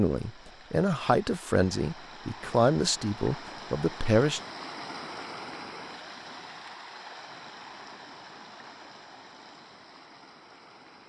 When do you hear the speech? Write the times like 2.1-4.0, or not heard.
0.0-4.4.